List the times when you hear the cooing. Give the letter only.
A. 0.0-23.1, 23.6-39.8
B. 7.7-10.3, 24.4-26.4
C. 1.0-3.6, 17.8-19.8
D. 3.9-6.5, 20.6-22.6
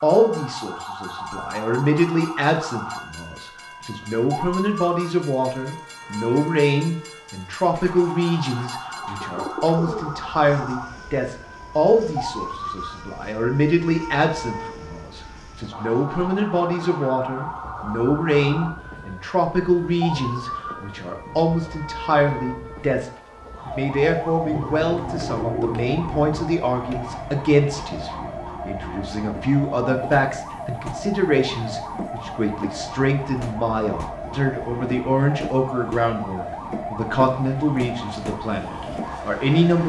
B.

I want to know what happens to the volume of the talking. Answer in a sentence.
The volume of the talking stays about the same.